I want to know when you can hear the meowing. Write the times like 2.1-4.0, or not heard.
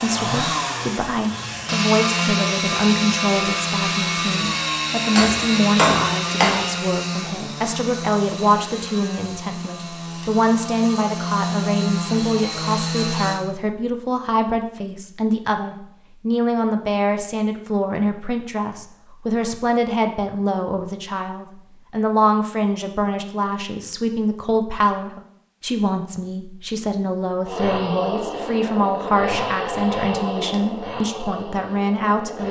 not heard.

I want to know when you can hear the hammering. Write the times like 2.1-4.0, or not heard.
5.2-6.7.